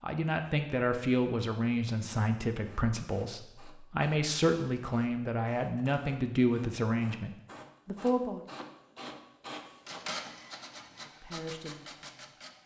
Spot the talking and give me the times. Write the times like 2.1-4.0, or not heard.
0.0-8.4, 11.0-12.4.